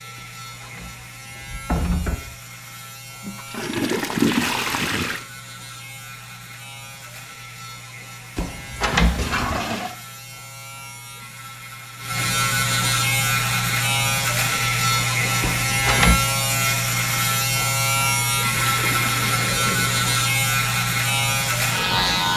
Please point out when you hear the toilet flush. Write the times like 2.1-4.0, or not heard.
3.2-5.2, 9.2-9.9, 18.5-20.1.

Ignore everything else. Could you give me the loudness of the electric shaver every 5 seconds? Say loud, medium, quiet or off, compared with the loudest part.
quiet, quiet, loud, loud, loud.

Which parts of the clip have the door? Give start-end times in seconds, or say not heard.
0.1-2.1, 8.3-9.6, 15.4-16.2.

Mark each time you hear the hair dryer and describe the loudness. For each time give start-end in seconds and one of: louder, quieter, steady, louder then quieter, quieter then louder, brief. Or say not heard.
not heard.